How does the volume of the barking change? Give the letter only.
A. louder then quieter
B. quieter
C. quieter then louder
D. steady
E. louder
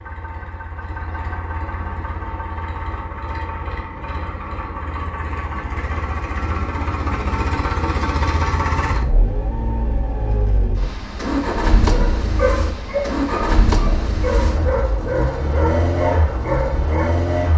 C.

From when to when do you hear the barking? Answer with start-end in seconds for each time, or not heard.
11.8-17.1.